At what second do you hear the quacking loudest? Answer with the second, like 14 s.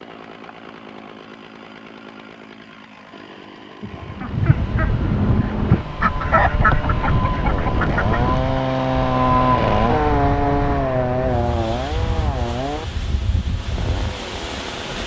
7 s.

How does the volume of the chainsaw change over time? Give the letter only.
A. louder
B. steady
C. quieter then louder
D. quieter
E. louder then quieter
E.